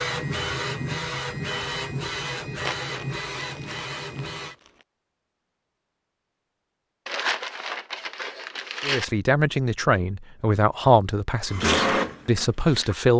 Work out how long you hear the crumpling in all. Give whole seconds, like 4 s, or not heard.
4 s.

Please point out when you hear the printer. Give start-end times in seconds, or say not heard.
0.0-4.5, 11.4-13.1.